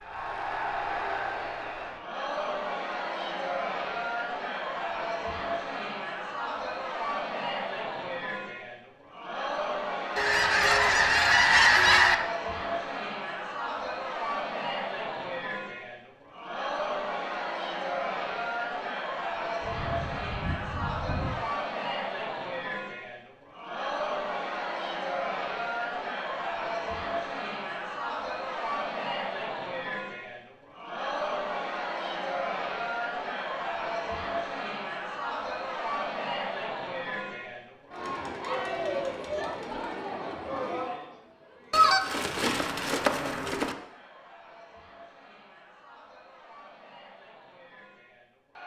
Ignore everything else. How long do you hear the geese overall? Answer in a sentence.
You can hear the geese for 6 seconds altogether.